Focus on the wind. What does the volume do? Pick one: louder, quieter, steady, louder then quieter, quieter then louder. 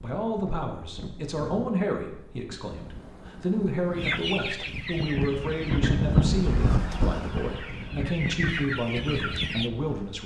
louder then quieter.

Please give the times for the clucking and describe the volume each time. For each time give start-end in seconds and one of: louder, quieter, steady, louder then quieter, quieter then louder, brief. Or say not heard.
4.0-9.7 quieter then louder.